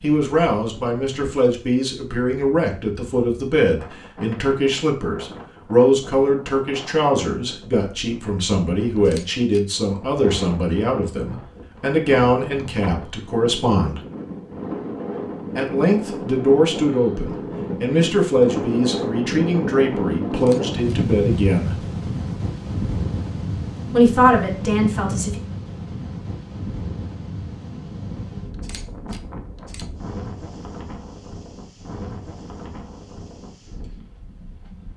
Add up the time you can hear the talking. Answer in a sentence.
The talking can be heard for 22 seconds in total.